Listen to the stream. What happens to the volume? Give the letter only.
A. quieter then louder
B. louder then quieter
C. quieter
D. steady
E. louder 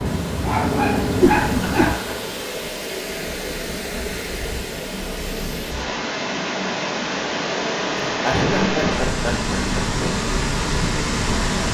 E.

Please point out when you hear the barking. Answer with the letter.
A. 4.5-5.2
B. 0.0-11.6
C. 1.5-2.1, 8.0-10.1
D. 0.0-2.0
D.